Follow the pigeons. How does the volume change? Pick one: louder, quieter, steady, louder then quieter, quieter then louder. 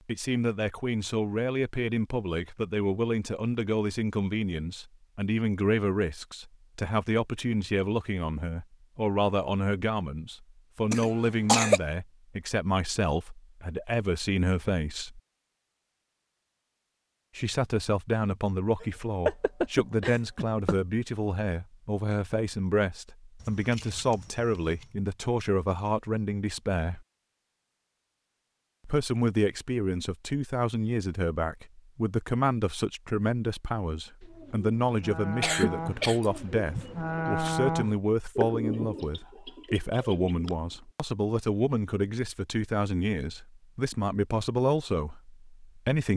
louder then quieter.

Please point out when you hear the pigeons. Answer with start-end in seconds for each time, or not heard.
34.2-40.8.